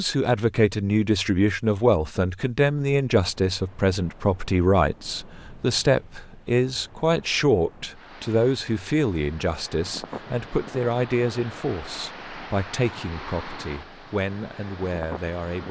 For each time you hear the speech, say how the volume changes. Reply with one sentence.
The speech can be heard from 0.0 to 15.6 s, getting quieter.